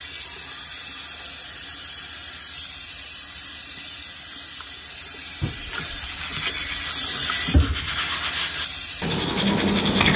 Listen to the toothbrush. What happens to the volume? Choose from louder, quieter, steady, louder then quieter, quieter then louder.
louder.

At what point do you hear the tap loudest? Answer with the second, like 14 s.
7 s.